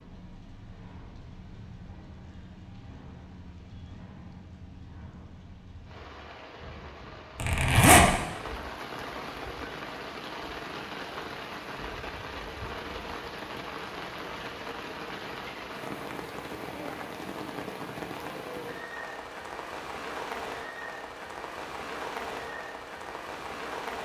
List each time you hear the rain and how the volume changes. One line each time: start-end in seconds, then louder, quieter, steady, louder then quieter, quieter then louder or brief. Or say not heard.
0.0-23.9 louder.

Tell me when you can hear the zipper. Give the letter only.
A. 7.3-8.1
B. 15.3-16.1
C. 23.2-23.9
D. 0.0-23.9
A.